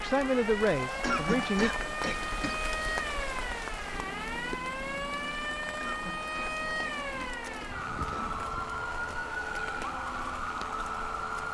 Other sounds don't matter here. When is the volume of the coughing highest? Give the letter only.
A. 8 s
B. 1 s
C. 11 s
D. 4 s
B.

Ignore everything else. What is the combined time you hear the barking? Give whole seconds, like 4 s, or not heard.
not heard.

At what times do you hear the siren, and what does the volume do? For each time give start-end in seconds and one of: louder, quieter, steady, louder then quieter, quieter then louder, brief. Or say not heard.
0.0-11.4 steady.